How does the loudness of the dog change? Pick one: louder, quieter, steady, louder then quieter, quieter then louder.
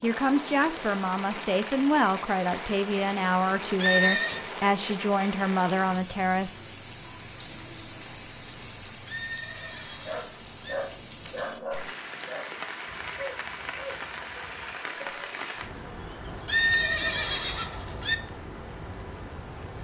quieter.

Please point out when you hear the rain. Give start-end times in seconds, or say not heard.
0.0-19.7.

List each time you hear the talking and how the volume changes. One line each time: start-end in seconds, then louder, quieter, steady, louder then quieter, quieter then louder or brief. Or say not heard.
0.0-6.6 steady.